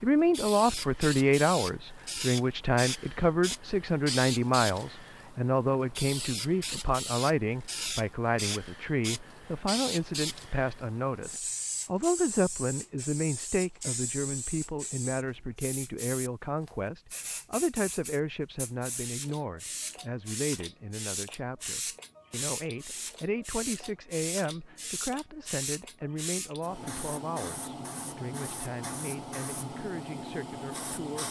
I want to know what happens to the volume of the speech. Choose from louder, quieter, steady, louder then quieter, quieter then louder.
quieter.